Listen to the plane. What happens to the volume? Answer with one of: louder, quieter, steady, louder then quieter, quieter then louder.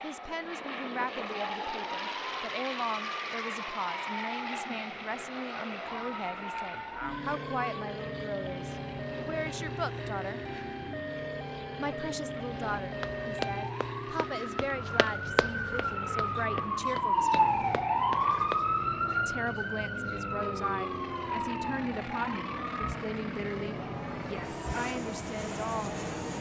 steady.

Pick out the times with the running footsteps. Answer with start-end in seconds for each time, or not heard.
12.7-18.6.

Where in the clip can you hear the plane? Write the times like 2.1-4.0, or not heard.
0.0-26.3.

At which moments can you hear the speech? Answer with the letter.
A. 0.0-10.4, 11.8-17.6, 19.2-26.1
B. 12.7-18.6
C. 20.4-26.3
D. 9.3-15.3
A.